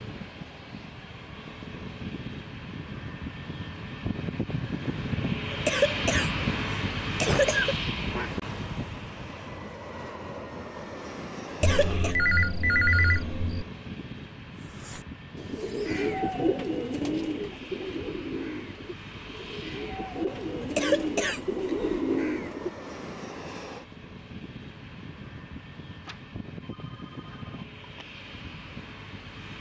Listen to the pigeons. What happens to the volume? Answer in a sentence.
The loudness of the pigeons goes down, then up.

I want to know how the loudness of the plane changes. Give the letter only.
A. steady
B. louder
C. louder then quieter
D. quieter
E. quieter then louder
D.